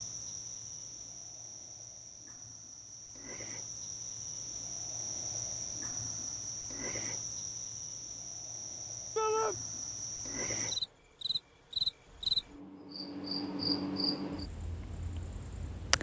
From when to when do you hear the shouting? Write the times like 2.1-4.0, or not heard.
9.2-9.6.